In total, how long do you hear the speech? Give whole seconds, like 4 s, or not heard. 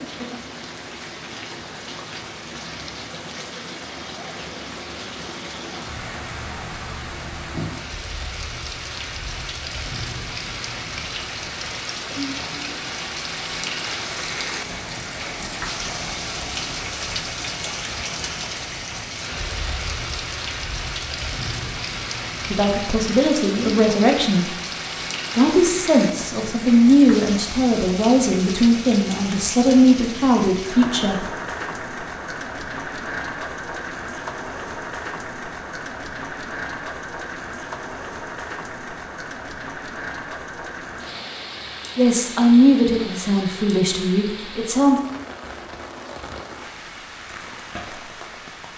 11 s.